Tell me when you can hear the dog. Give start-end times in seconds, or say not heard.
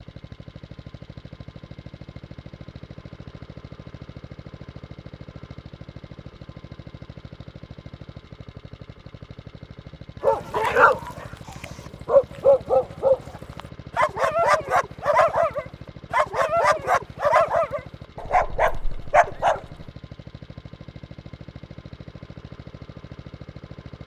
10.2-19.9.